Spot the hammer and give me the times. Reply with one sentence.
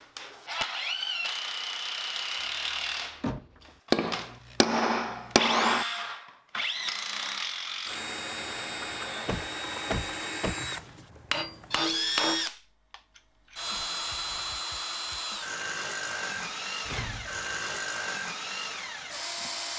The hammer can be heard from 3.9 to 5.8 s and from 10.7 to 12.4 s.